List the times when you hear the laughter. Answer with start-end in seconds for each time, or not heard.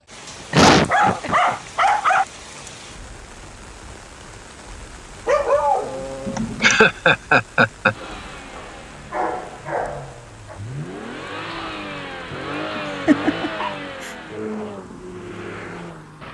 0.5-1.6, 6.2-8.0, 12.8-14.1.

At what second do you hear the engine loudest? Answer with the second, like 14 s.
13 s.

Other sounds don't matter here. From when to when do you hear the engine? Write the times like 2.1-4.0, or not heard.
7.8-16.2.